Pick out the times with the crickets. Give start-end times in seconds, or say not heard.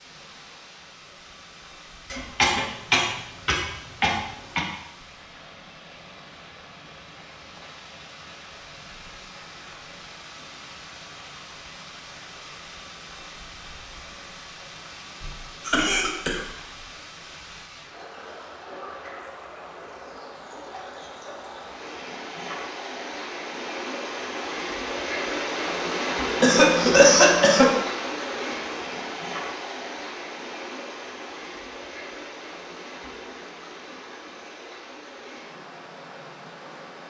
not heard.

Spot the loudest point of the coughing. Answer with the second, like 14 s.
27 s.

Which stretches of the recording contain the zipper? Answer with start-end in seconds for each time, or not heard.
not heard.